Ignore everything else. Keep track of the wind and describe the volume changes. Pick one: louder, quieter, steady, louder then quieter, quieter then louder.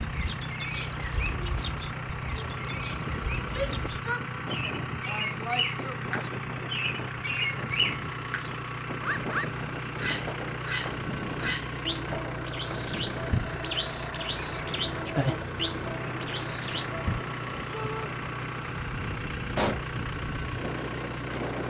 steady.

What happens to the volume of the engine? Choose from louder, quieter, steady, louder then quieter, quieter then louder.
steady.